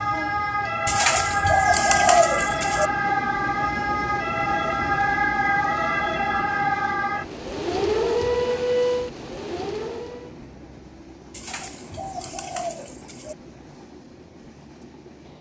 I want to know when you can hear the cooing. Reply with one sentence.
You can hear the cooing from 0.8 to 2.9 s and from 11.3 to 13.3 s.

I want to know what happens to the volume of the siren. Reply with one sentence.
The loudness of the siren stays about the same.